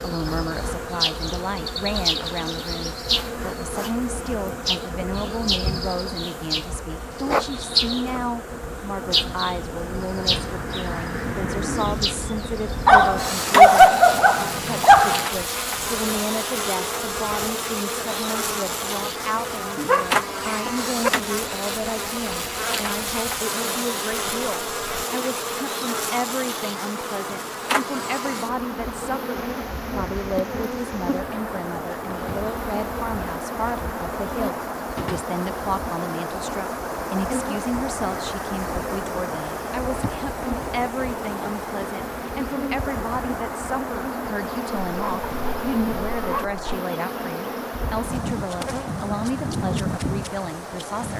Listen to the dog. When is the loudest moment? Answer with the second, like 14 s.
14 s.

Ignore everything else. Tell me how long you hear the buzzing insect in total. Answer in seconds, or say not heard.
51 s.